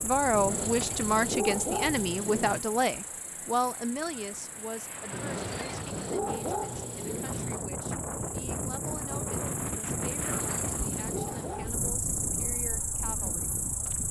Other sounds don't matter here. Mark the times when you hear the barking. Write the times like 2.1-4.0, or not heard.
0.3-2.6, 5.1-7.7, 10.1-11.8.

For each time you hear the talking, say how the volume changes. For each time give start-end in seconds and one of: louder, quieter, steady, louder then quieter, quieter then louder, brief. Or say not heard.
0.0-13.6 quieter.